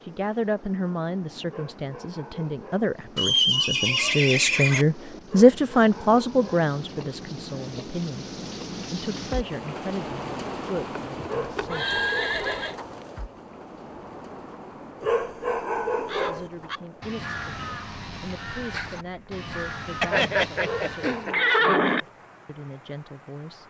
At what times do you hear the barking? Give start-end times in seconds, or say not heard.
1.4-2.9, 5.2-6.7, 11.2-12.8, 15.0-16.5, 20.6-22.1.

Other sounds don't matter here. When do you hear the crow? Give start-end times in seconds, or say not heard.
15.9-21.3.